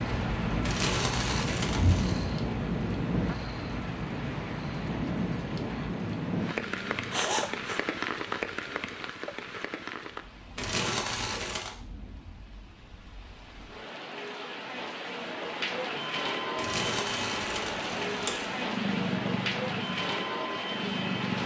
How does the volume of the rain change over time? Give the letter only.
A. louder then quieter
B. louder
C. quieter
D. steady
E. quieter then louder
E.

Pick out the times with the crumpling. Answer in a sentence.
The crumpling can be heard from 0.6 to 2.3 s, from 10.6 to 11.8 s and from 16.6 to 18.6 s.